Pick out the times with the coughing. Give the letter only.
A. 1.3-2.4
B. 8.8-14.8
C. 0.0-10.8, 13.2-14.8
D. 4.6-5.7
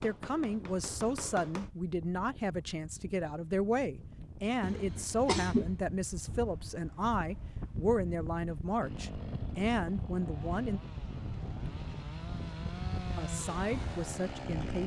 D.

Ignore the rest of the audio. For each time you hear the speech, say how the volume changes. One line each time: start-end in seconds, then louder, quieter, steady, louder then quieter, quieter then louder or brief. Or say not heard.
0.0-10.8 steady
13.2-14.8 brief.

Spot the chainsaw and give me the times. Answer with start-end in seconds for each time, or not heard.
8.8-14.8.